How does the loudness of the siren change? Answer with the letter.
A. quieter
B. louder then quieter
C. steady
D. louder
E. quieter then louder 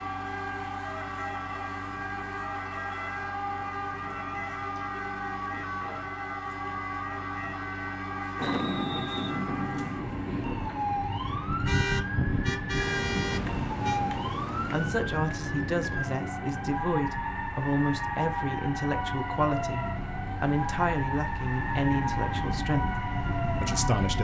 C.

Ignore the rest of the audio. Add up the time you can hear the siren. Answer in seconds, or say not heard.
24 s.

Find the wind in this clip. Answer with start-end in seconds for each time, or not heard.
8.3-24.1.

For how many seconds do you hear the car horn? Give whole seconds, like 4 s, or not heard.
2 s.